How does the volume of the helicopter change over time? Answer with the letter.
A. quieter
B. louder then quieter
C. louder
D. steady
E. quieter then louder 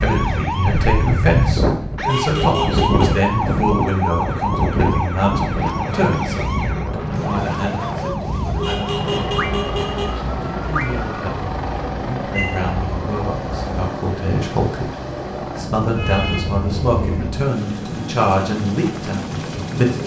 D.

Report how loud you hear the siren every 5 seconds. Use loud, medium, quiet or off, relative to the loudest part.
loud, loud, medium, off.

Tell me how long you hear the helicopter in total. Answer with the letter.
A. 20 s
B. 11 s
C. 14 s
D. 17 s
B.